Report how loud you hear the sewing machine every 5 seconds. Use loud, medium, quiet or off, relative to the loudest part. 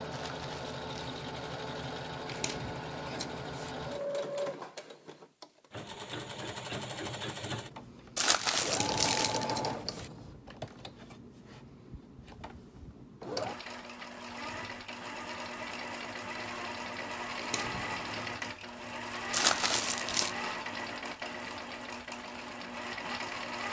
loud, loud, medium, loud, loud.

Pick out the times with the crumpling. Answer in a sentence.
You can hear the crumpling from 0.1 to 1.1 s, from 8.2 to 9.4 s and from 19.3 to 20.3 s.